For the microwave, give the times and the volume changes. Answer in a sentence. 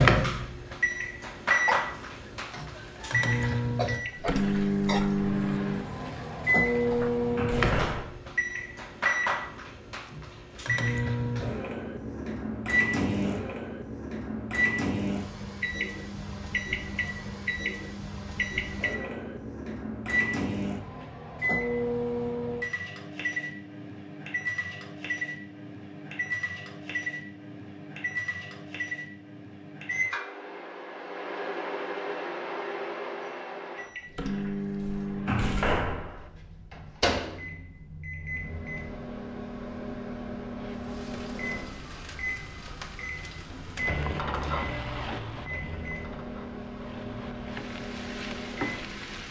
The microwave can be heard from 0.0 to 49.2 s, getting quieter.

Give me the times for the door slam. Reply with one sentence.
You can hear the door slam from 7.2 to 8.2 s and from 34.8 to 36.3 s.